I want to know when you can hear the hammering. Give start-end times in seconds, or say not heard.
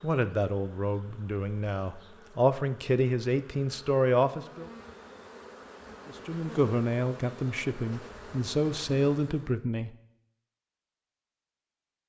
not heard.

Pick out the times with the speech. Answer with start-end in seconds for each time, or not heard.
0.0-4.7, 6.0-9.9.